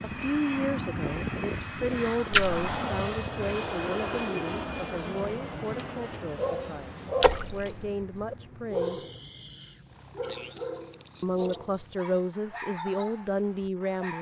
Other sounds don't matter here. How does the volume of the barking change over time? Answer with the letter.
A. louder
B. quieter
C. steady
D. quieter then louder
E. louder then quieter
B.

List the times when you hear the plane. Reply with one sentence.
The plane can be heard from 0.0 to 12.1 s.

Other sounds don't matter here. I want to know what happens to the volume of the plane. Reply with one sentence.
The loudness of the plane goes down.